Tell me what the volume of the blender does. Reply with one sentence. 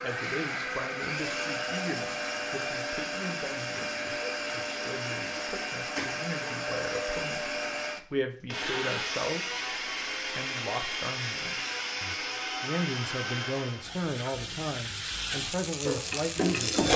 The volume of the blender stays about the same.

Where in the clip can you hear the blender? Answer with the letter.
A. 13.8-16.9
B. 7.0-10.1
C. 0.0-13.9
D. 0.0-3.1
C.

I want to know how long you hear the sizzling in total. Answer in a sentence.
The sizzling can be heard for 3 seconds in total.